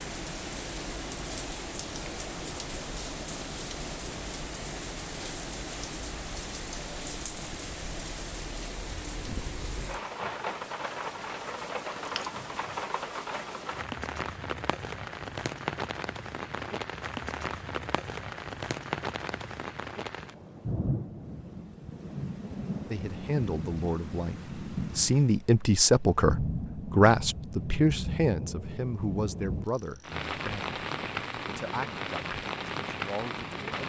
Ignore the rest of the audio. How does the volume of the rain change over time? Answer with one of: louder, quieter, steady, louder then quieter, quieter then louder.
steady.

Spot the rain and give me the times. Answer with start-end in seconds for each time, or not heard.
0.0-33.8.